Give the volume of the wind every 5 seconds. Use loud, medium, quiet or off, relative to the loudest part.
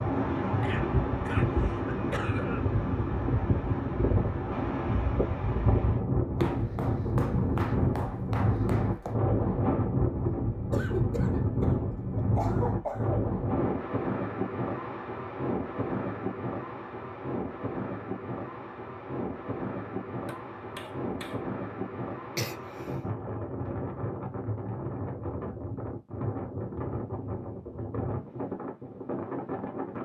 loud, loud, loud, medium, medium, medium.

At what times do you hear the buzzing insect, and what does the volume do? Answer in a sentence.
The buzzing insect can't be heard in this clip.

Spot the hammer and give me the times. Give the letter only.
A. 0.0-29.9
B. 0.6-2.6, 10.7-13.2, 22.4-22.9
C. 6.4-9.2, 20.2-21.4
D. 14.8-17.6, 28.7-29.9
C.